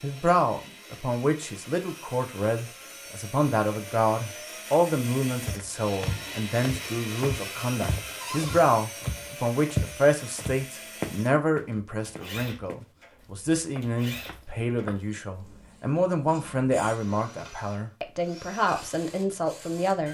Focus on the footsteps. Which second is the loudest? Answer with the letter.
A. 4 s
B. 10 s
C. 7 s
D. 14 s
B.